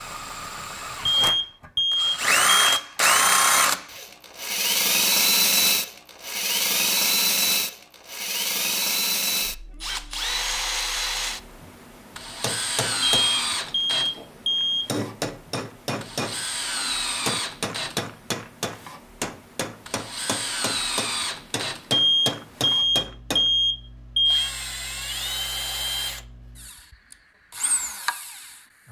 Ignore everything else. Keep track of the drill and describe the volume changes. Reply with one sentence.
The loudness of the drill goes down.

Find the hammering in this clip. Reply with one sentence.
You can hear the hammering from 12.4 to 16.4 s and from 17.2 to 23.5 s.